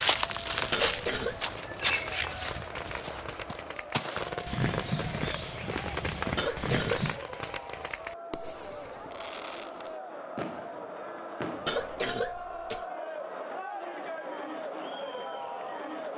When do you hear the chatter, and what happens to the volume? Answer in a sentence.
The chatter can be heard from 0.2 to 16.1 s, getting louder.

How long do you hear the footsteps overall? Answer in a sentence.
You can hear the footsteps for 7 seconds altogether.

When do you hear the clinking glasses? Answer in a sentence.
You can hear the clinking glasses from 1.6 to 2.6 s.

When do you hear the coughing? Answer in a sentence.
The coughing can be heard from 0.7 to 1.4 s, from 6.3 to 7.1 s and from 11.7 to 12.8 s.